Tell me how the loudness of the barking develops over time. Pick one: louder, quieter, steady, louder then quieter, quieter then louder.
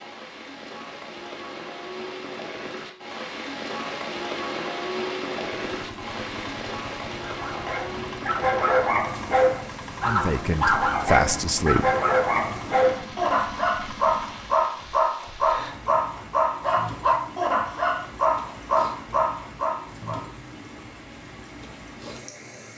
steady.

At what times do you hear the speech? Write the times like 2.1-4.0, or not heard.
10.1-11.8.